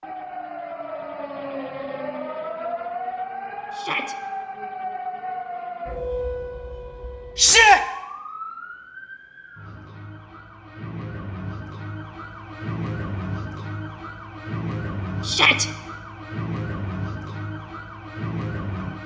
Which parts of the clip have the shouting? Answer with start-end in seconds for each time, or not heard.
3.7-4.2, 7.3-7.8, 15.2-15.7.